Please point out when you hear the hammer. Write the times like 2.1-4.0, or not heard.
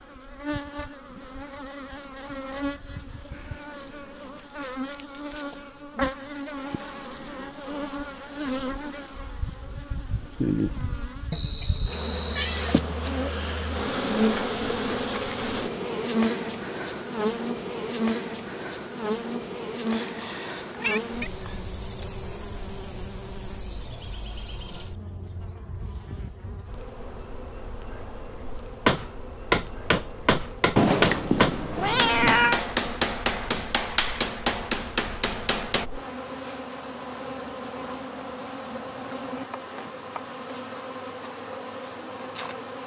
28.9-35.9.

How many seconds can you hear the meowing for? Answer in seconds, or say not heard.
5 s.